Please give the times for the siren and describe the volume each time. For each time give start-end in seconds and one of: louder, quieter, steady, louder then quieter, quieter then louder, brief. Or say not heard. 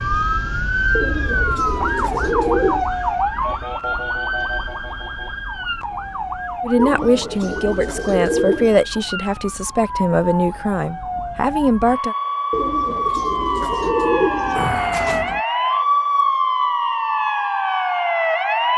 0.0-18.7 quieter then louder.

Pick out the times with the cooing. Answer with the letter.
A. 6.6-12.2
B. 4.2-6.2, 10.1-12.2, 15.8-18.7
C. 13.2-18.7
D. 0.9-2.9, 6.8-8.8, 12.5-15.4
D.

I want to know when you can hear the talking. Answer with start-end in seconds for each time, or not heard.
6.6-12.2.